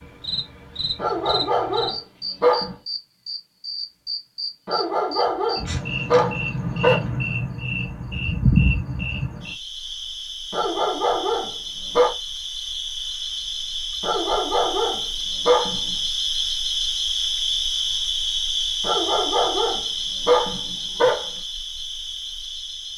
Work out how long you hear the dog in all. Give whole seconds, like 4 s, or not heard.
10 s.